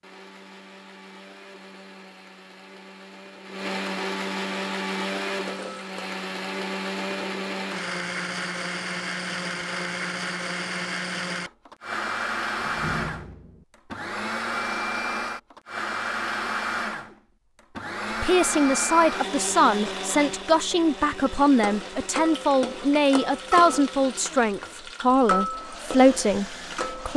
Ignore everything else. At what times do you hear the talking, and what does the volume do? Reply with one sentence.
You can hear the talking from 18.2 to 27.1 s, at a steady volume.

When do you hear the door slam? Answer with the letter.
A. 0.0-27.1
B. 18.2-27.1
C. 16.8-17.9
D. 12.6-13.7
D.